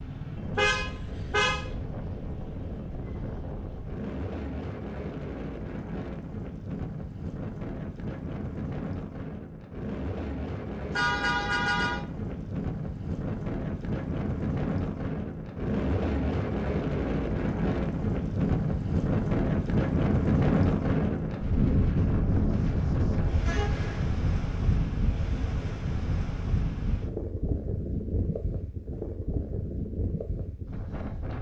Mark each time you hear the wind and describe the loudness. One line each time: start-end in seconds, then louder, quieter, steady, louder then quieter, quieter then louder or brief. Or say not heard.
0.0-31.3 louder then quieter.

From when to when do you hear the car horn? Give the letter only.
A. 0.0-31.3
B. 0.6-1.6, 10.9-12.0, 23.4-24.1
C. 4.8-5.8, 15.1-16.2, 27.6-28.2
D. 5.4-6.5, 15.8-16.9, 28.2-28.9
B.